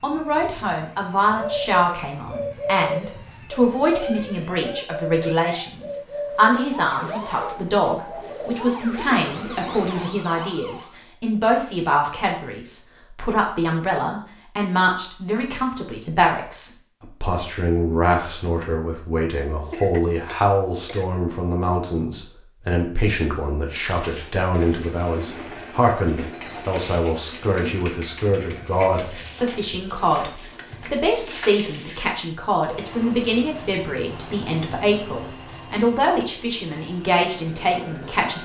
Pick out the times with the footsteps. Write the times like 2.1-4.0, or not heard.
not heard.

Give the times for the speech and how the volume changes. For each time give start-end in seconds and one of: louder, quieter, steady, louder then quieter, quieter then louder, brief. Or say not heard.
0.0-38.4 steady.